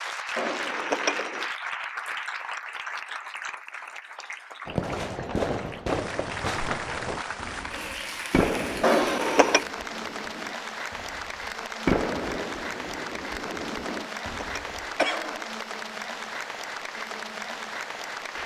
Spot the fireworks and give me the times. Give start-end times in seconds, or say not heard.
4.7-14.8.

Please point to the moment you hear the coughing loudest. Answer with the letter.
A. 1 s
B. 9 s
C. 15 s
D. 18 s
B.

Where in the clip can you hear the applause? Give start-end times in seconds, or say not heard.
0.0-18.4.